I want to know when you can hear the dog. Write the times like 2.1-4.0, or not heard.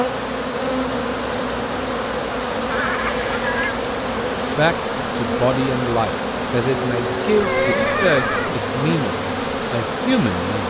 not heard.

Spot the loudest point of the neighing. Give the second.
8 s.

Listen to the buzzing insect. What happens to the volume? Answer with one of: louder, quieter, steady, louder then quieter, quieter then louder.
steady.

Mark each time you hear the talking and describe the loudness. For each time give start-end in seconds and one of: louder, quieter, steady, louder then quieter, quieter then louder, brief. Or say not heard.
4.5-10.6 steady.